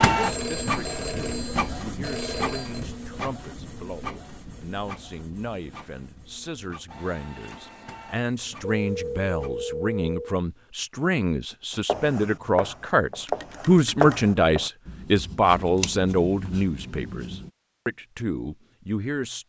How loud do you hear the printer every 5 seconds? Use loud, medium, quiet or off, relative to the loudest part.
loud, quiet, off, off.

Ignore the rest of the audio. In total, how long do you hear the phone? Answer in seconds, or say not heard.
5 s.